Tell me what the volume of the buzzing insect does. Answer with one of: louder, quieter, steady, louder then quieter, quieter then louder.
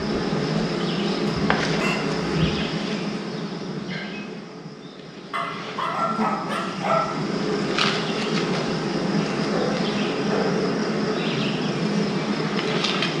quieter then louder.